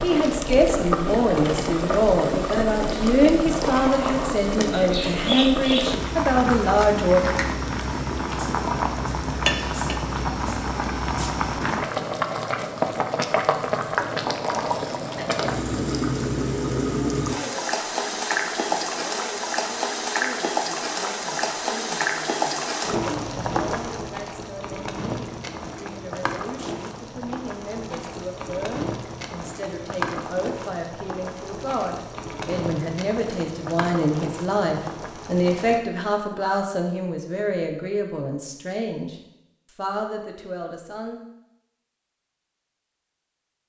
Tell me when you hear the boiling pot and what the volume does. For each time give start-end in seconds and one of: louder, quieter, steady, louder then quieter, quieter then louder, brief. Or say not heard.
0.0-35.8 quieter.